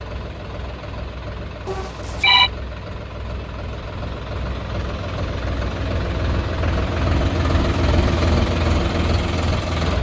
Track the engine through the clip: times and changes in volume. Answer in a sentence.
The engine can be heard from 0.0 to 9.9 s, getting louder.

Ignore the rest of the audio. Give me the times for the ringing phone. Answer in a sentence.
You can hear the ringing phone from 1.6 to 2.5 s.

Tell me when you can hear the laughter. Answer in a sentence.
The laughter can't be heard in this clip.